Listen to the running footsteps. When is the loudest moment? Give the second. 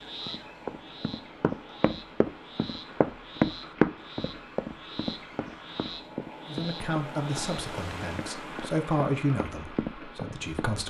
4 s.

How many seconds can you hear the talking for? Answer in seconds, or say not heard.
4 s.